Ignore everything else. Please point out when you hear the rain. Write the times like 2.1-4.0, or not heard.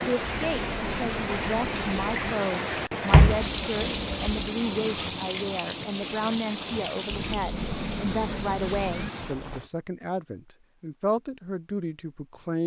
0.0-9.7.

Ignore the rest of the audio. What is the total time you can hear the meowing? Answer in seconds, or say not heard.
4 s.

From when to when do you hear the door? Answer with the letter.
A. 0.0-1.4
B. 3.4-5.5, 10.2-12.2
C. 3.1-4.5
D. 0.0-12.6
C.